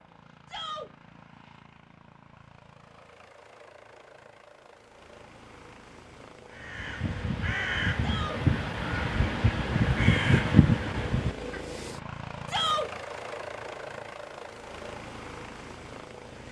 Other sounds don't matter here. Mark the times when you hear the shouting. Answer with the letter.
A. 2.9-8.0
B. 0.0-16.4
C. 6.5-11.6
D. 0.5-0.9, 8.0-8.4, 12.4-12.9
D.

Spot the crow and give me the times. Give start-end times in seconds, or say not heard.
6.5-11.6.